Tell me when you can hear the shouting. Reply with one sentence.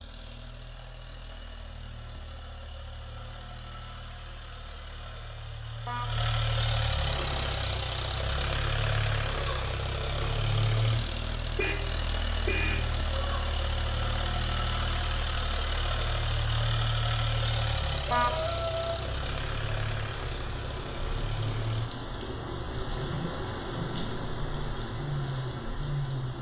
You can hear the shouting from 18.2 to 19.1 s.